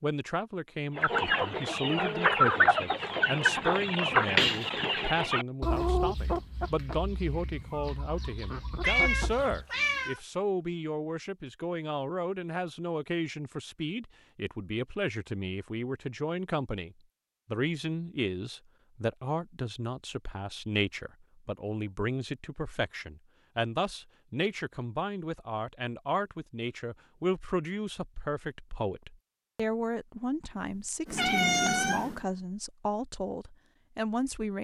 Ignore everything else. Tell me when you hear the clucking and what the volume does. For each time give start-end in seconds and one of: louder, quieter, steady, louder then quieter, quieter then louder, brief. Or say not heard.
0.9-10.1 quieter.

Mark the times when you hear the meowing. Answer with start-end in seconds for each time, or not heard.
8.8-10.2, 31.1-32.2.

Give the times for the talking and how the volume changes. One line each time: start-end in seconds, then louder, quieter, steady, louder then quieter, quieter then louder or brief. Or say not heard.
0.0-34.5 steady.